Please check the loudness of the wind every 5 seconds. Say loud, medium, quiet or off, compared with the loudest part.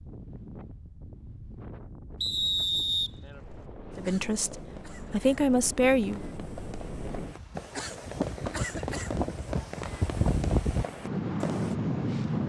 quiet, medium, loud.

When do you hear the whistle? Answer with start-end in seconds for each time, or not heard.
2.2-3.6.